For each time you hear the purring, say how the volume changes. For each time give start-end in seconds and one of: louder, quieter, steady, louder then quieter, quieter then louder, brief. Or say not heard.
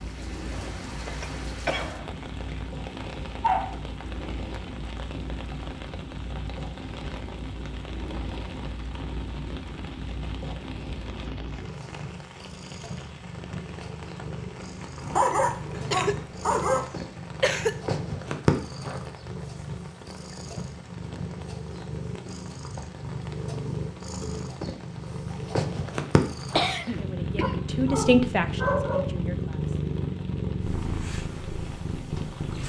0.0-32.6 louder.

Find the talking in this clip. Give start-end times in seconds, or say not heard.
26.9-29.8.